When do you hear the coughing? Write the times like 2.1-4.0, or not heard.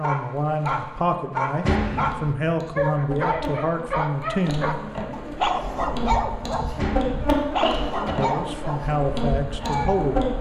1.6-2.1, 6.8-8.2.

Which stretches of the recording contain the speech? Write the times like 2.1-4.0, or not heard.
0.0-4.8, 8.2-10.3.